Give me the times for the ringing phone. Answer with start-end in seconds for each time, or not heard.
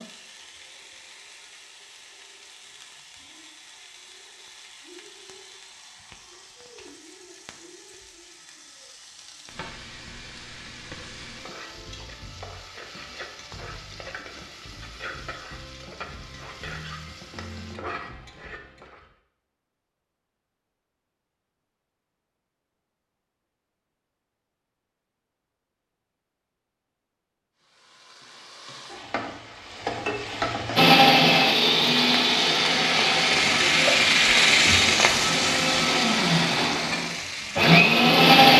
not heard.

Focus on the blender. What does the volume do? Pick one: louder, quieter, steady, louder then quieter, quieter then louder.
quieter then louder.